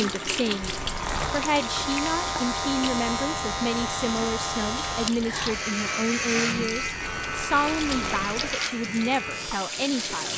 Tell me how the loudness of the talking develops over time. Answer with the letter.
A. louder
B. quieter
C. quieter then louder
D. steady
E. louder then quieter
D.